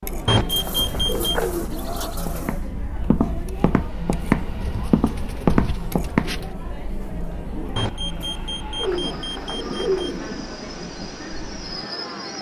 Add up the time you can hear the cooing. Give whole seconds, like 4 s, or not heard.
6 s.